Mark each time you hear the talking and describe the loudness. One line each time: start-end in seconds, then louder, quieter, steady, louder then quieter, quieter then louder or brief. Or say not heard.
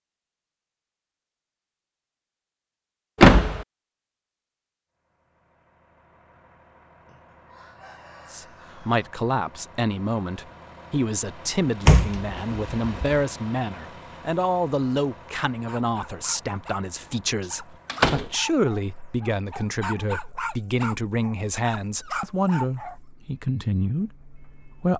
8.3-24.9 steady.